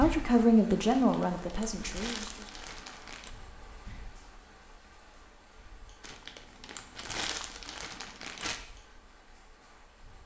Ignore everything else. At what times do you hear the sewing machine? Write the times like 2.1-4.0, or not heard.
not heard.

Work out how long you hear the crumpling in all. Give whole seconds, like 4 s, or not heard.
5 s.